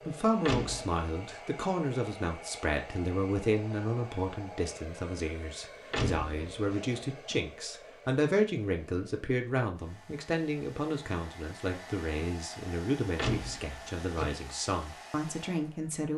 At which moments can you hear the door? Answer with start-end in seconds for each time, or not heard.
0.5-1.0, 5.9-7.0, 13.2-14.4.